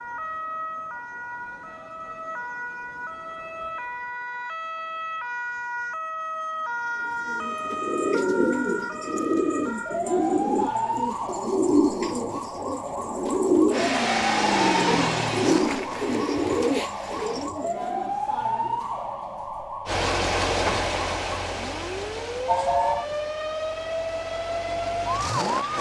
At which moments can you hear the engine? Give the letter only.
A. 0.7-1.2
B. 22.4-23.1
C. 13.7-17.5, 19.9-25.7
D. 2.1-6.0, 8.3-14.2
C.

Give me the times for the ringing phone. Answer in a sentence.
You can hear the ringing phone from 22.4 to 23.1 s.